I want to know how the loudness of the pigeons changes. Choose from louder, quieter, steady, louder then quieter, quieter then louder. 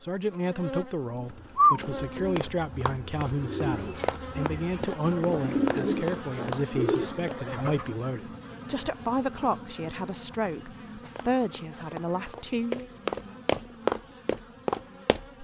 quieter then louder.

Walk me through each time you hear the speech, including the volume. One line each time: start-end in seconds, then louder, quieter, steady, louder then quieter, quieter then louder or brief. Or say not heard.
0.0-12.9 steady.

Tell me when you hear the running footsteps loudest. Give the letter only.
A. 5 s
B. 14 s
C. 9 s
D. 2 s
B.